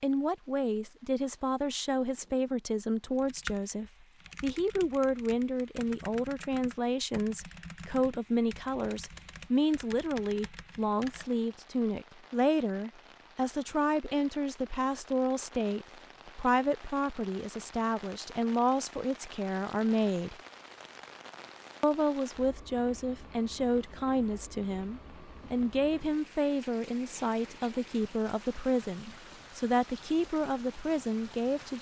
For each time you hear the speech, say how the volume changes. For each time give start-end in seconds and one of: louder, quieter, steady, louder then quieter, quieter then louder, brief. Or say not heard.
0.0-20.4 steady
21.8-31.7 steady.